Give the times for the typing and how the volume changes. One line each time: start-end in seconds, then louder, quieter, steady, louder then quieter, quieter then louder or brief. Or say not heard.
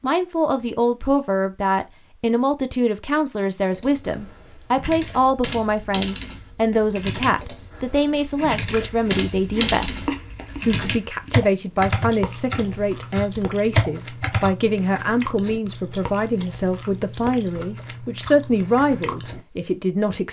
3.7-14.6 louder.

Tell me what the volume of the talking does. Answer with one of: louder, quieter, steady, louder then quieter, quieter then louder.
steady.